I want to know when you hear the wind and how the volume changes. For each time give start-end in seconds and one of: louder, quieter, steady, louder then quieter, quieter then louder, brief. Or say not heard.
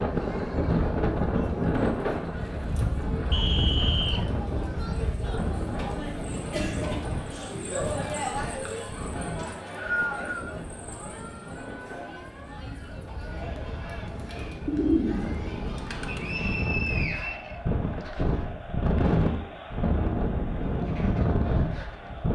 0.0-22.3 quieter then louder.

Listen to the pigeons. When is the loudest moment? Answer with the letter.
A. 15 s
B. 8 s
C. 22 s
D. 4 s
A.